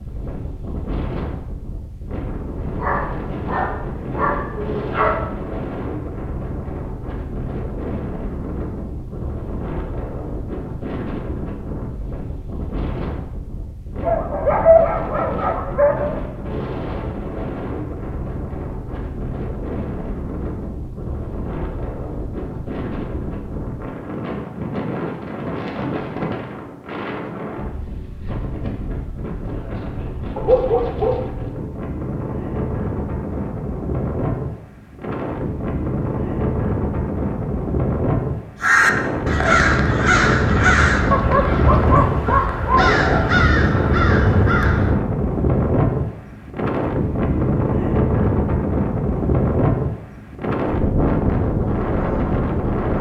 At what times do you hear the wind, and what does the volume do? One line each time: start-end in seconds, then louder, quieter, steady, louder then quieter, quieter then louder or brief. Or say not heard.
0.0-52.9 louder.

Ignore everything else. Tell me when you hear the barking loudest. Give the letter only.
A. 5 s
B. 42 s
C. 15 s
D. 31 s
C.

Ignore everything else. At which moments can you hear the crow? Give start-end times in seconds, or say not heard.
38.6-45.0.